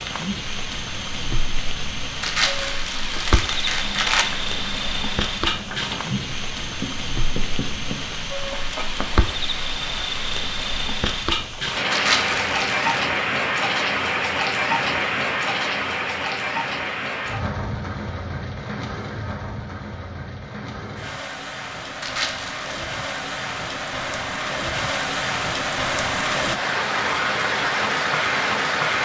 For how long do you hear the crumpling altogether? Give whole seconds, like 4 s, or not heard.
4 s.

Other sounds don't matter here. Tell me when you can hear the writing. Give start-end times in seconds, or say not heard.
3.8-9.2.